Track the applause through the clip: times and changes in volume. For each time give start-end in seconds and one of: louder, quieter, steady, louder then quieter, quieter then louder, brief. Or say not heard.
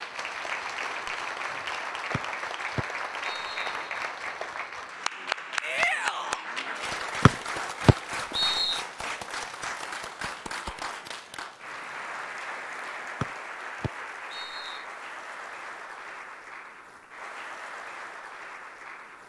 0.0-19.2 quieter.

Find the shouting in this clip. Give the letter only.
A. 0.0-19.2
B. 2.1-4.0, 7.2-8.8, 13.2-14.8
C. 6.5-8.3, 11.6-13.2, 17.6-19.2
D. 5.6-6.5
D.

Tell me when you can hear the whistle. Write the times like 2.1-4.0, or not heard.
2.1-4.0, 7.2-8.8, 13.2-14.8.